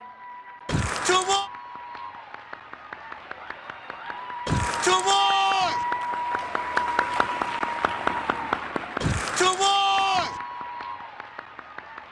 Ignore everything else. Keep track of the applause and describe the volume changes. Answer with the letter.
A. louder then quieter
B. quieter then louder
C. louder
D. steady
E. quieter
A.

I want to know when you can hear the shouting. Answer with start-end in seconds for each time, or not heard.
0.7-1.5, 4.5-5.8, 9.0-10.4.